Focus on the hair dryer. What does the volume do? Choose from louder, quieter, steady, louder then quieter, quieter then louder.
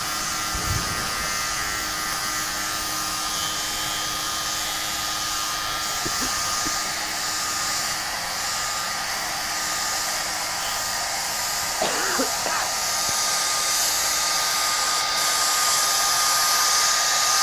louder.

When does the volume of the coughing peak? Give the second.
12 s.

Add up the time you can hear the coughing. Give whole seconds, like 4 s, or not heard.
3 s.